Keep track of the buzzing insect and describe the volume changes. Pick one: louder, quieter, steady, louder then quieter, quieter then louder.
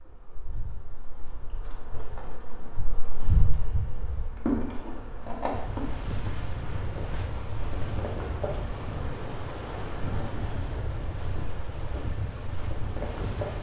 louder then quieter.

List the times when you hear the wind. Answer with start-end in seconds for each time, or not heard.
5.5-13.5.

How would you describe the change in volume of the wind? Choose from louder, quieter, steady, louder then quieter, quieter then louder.
steady.